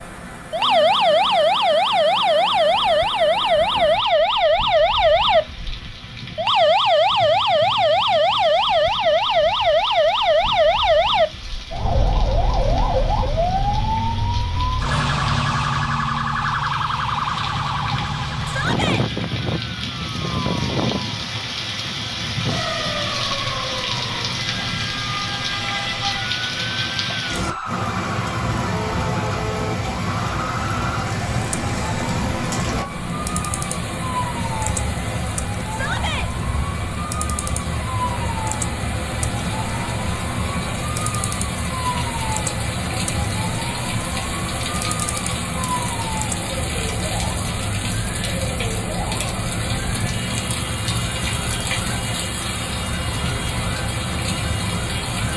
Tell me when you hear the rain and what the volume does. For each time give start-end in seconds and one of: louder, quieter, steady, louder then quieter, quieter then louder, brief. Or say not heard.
0.0-55.3 louder.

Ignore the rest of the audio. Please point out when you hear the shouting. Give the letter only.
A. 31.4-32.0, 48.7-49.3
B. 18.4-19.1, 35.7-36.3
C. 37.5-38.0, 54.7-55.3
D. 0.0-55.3
B.